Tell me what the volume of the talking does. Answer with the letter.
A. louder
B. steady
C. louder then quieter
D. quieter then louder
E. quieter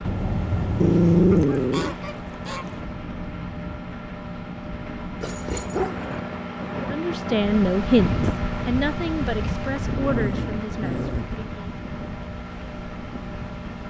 E.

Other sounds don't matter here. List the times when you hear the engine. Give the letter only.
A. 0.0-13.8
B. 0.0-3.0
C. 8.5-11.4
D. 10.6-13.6
A.